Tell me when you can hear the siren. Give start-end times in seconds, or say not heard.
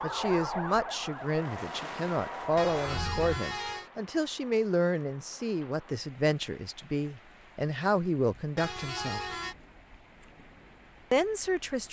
0.0-3.4.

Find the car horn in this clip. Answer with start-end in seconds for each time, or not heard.
2.5-3.9, 8.6-9.6.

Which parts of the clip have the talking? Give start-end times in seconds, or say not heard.
0.0-9.2, 11.1-11.8.